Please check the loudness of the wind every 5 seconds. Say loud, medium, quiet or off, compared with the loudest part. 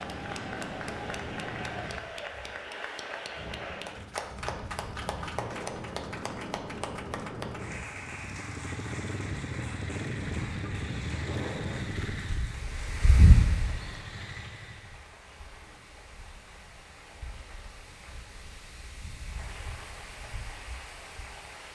medium, medium, loud, quiet, quiet.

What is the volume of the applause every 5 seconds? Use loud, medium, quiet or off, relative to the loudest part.
loud, loud, medium, quiet, medium.